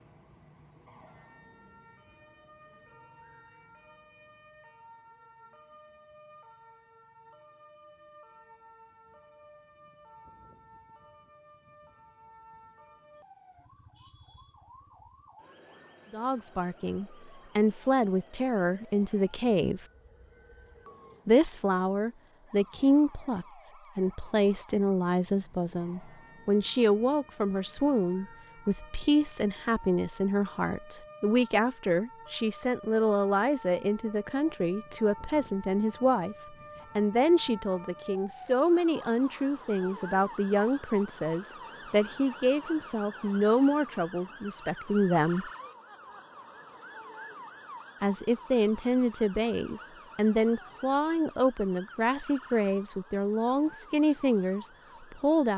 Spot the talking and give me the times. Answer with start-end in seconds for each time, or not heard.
16.1-19.9, 21.2-45.5, 48.0-55.5.